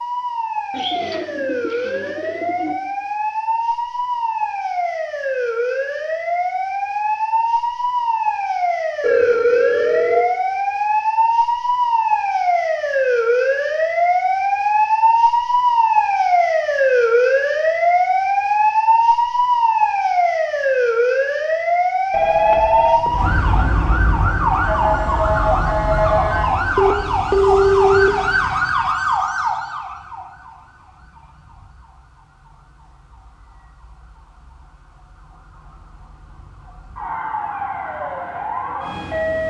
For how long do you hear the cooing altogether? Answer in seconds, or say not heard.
2 s.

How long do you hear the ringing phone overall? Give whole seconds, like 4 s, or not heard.
4 s.